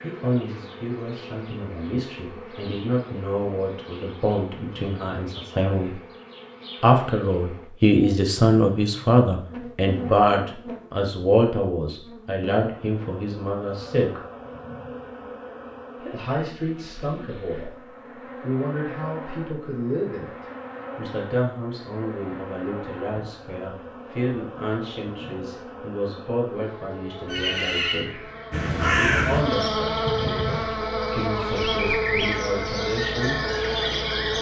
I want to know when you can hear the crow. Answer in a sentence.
You can hear the crow from 28.5 to 30.6 s.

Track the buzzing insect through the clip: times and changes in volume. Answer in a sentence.
You can hear the buzzing insect from 0.0 to 34.3 s, getting louder.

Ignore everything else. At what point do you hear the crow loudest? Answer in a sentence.
The loudest moment of the crow is at 29 seconds.